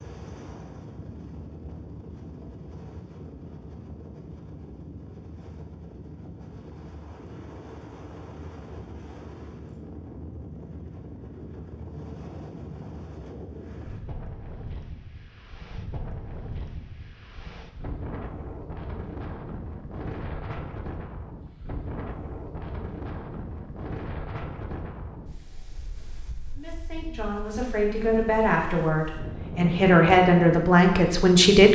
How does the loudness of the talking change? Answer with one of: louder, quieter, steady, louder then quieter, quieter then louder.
louder.